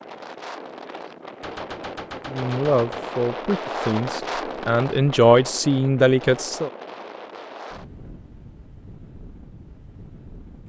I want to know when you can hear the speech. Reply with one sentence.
The speech can be heard from 2.2 to 6.7 s.